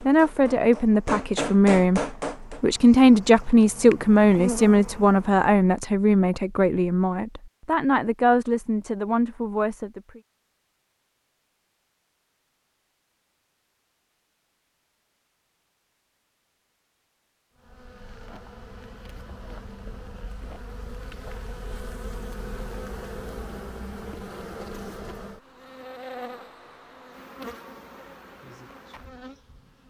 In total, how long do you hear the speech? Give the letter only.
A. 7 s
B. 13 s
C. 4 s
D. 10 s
D.